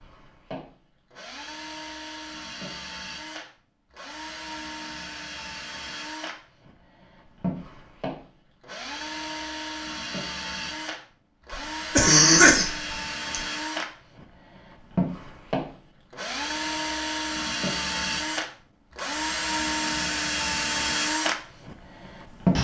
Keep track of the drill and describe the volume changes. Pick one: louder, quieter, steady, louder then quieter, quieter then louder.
louder.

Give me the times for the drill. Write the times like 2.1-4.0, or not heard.
0.0-22.5.